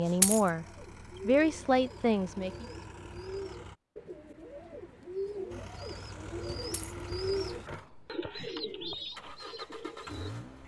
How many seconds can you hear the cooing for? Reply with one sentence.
You can hear the cooing for 10 seconds altogether.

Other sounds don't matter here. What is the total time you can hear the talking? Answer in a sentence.
You can hear the talking for 2 seconds altogether.